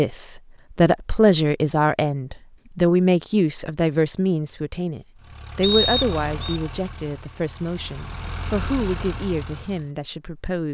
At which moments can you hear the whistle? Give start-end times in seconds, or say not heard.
5.6-6.6.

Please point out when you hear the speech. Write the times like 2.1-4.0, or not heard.
0.0-10.6.